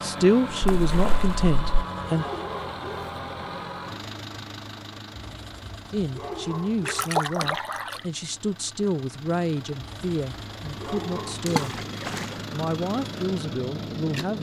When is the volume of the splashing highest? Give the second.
7 s.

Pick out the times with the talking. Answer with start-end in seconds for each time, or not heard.
0.0-2.2, 5.9-11.8, 12.5-14.3.